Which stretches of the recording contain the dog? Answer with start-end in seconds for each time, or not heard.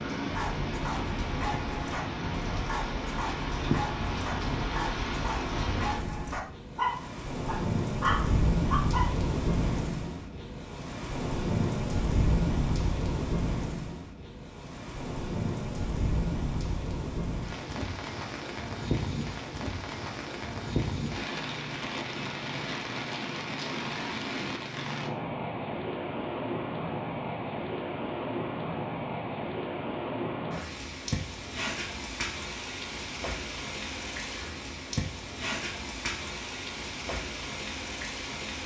0.3-9.1.